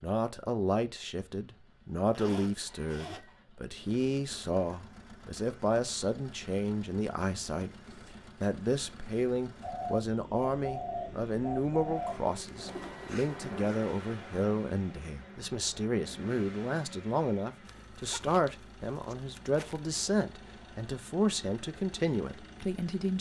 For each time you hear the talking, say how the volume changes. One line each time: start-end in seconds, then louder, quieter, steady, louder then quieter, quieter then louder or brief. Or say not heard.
0.0-23.1 steady.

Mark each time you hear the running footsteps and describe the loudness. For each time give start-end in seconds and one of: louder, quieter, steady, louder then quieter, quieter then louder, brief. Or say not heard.
not heard.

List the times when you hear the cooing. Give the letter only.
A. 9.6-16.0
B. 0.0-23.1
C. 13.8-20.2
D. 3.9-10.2
A.